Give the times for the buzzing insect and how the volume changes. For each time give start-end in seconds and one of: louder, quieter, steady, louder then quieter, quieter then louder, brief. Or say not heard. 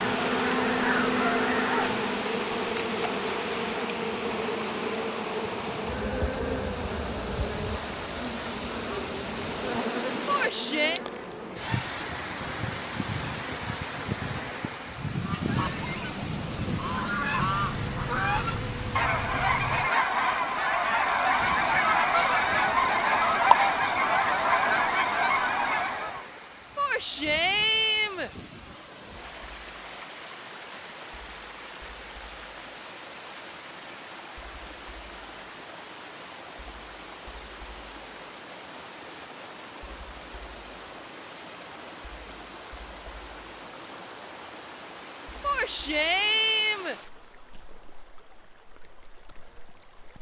0.0-19.9 quieter.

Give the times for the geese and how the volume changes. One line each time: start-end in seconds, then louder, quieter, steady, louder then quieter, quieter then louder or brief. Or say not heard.
0.0-2.1 brief
15.2-26.2 louder.